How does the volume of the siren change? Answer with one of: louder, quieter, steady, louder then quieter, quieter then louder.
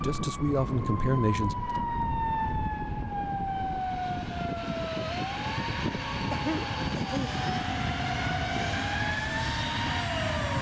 quieter.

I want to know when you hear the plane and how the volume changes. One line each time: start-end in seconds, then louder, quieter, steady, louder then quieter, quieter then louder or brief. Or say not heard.
0.0-10.5 louder.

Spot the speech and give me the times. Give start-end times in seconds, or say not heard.
0.0-1.6.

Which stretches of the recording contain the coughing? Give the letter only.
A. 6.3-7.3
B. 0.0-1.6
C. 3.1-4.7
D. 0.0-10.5
A.